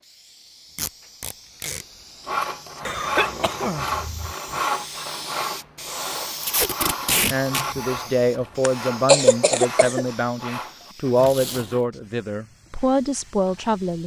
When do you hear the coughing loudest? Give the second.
9 s.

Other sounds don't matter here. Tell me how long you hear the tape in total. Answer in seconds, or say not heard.
3 s.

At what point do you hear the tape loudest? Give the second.
7 s.